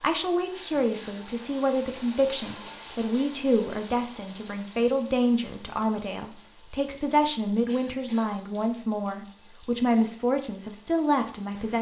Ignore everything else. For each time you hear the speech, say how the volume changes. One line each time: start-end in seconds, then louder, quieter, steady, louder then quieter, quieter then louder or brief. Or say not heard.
0.0-11.7 steady.